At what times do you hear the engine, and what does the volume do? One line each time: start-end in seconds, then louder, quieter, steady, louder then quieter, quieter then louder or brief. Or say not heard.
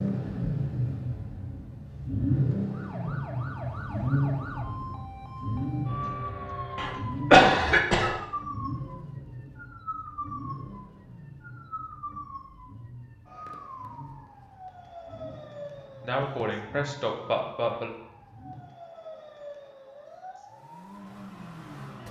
0.0-18.8 quieter
20.4-22.0 brief.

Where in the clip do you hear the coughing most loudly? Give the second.
7 s.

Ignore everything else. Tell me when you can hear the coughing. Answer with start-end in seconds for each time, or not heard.
6.8-8.2, 16.1-17.9.